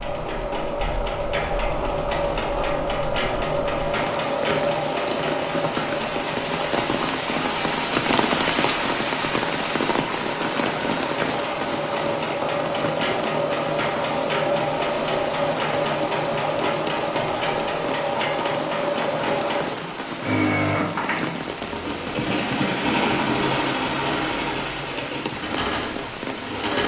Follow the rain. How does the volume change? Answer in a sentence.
The loudness of the rain goes down.